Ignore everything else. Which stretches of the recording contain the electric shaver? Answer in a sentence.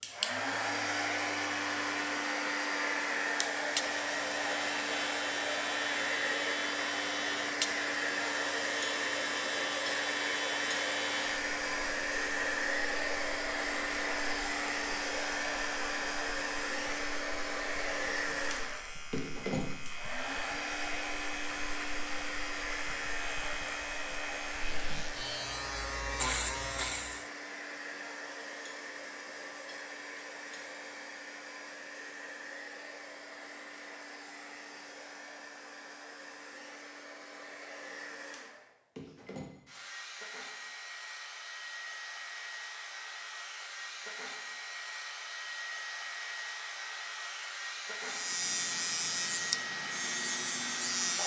You can hear the electric shaver from 0.0 to 27.3 s and from 48.0 to 51.2 s.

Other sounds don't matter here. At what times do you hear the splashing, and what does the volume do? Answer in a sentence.
The splashing can't be heard in this clip.